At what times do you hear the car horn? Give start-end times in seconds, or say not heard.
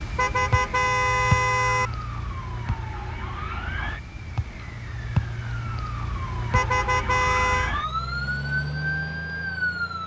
0.1-1.9, 6.5-7.8.